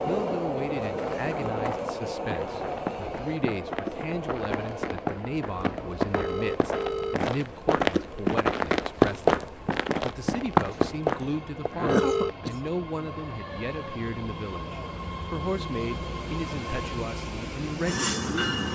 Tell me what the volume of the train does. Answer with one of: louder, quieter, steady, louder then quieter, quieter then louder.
quieter then louder.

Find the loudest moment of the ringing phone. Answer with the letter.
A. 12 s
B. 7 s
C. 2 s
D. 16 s
A.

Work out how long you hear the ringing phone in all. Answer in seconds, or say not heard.
2 s.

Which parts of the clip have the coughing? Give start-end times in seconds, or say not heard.
10.7-12.6.